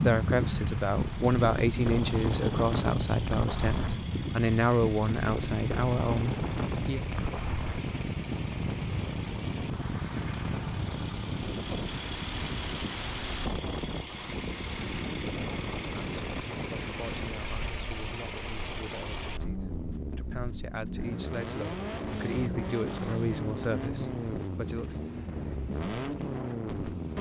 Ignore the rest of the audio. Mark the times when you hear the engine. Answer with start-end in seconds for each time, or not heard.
0.0-27.1.